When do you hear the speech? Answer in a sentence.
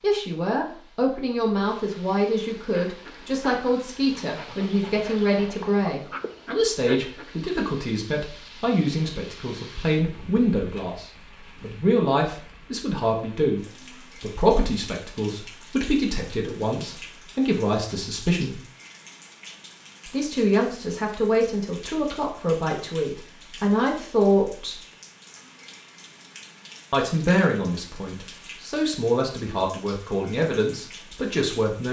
You can hear the speech from 0.0 to 18.6 s, from 20.1 to 24.8 s and from 26.9 to 31.8 s.